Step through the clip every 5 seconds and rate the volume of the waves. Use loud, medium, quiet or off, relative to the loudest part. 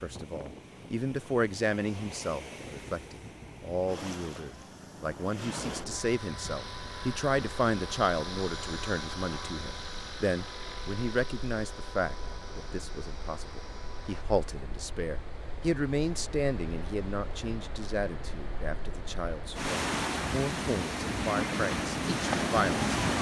quiet, quiet, quiet, medium, loud.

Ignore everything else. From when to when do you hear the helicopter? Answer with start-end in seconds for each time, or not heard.
5.5-14.2.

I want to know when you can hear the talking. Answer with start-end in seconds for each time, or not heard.
0.0-22.9.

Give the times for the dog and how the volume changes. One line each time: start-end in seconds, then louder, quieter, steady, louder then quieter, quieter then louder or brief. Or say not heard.
not heard.